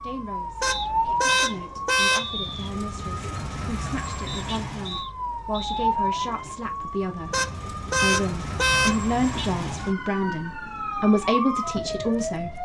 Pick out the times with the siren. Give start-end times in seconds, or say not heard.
0.0-12.5.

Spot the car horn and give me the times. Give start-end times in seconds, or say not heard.
0.6-2.3, 7.3-8.9.